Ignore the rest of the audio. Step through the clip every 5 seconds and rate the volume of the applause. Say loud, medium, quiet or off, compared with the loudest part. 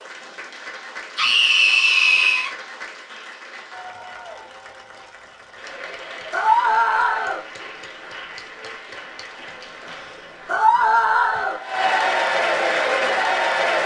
quiet, quiet, loud.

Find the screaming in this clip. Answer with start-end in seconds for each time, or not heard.
1.1-2.5, 6.3-7.4, 10.4-11.6.